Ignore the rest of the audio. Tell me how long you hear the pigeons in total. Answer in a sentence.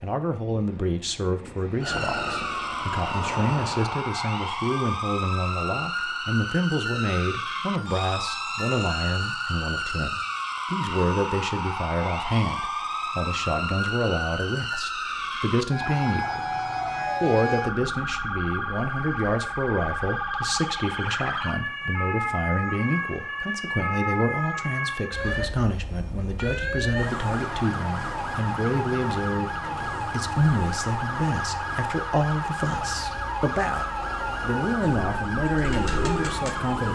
The pigeons can be heard for 2 seconds in total.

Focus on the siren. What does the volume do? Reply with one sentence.
The volume of the siren stays about the same.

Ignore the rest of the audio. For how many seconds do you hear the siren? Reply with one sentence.
You can hear the siren for 35 seconds altogether.